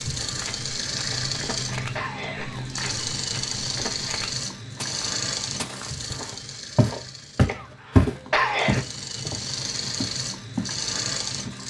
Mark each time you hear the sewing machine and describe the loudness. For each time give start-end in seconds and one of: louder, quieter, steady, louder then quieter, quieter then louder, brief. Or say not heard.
0.0-11.6 quieter then louder.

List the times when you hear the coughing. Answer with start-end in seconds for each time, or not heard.
1.1-3.1, 7.5-8.8.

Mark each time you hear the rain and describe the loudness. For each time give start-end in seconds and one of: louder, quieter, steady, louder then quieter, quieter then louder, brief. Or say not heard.
not heard.